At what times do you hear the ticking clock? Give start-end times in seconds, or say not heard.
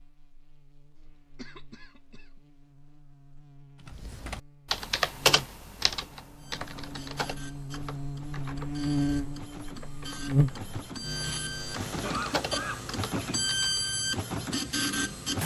not heard.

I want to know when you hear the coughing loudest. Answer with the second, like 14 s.
12 s.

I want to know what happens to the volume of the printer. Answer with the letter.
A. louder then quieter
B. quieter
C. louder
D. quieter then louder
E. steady
C.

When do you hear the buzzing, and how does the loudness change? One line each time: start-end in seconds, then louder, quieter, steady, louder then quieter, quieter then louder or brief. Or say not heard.
0.0-15.4 louder then quieter.